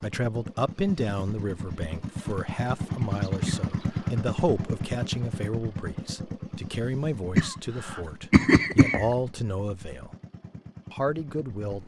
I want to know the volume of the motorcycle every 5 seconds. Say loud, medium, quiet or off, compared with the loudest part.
loud, medium, quiet.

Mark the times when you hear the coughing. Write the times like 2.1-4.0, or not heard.
3.5-4.1, 7.3-9.1.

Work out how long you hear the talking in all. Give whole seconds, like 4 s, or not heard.
11 s.